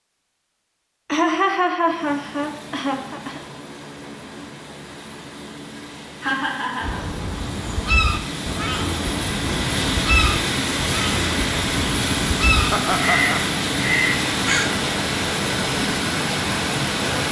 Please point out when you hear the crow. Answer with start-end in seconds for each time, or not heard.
6.8-14.8.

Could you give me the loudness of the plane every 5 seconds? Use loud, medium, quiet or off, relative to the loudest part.
quiet, medium, loud, loud.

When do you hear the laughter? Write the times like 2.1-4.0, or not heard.
1.1-3.4, 6.2-7.0, 12.7-13.4.